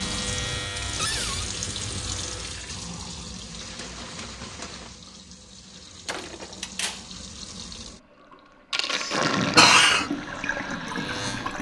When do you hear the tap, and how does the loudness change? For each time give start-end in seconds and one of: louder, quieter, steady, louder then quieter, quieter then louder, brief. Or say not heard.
0.0-11.5 quieter then louder.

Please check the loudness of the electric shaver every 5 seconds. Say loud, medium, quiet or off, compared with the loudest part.
loud, off, loud.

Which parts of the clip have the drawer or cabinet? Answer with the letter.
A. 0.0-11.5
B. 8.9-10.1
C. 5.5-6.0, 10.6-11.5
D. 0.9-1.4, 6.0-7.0
D.